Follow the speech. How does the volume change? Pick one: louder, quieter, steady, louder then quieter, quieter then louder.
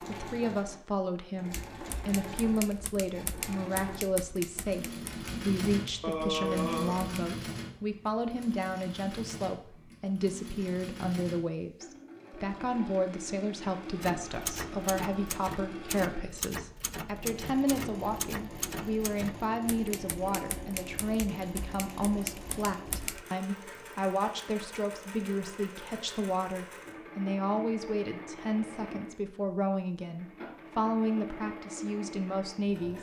steady.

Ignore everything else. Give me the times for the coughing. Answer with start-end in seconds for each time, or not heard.
6.0-7.1.